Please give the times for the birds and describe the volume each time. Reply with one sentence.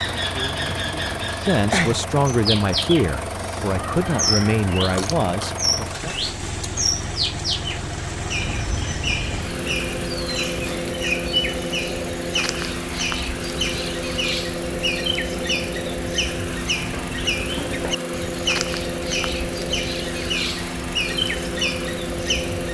You can hear the birds from 0.0 to 22.6 s, at a steady volume.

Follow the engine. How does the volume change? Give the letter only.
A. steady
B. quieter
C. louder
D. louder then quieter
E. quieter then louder
A.